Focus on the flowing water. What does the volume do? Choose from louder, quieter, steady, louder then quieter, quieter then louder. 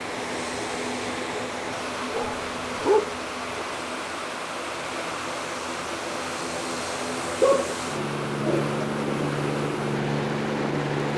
steady.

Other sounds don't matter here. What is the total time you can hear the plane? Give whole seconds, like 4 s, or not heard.
11 s.